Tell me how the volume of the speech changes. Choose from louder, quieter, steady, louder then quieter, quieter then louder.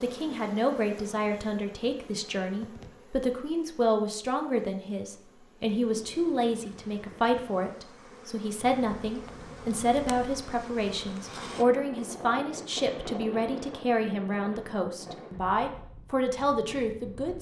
steady.